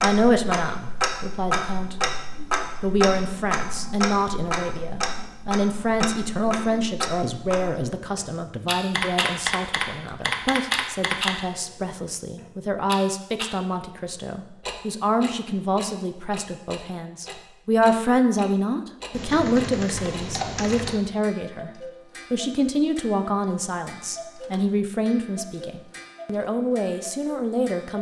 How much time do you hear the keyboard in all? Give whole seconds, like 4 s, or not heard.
4 s.